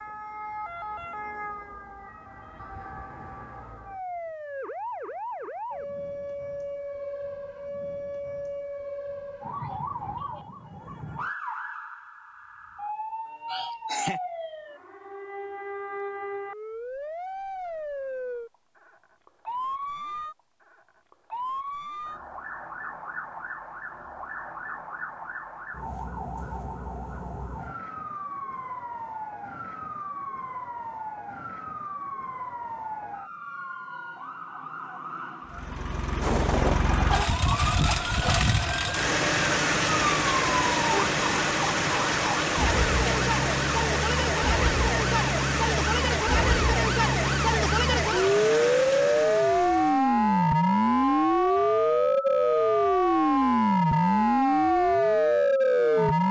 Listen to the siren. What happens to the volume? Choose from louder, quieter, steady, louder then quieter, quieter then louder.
louder.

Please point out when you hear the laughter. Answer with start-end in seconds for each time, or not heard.
13.4-14.2.